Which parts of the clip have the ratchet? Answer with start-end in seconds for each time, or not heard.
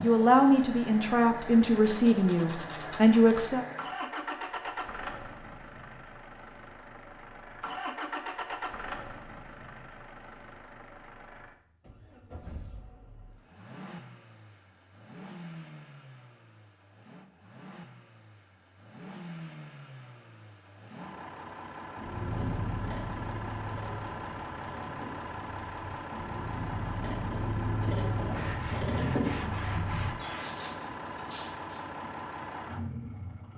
21.9-31.8.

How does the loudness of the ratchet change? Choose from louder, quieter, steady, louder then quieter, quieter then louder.
quieter then louder.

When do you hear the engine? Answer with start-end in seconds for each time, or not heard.
0.0-33.5.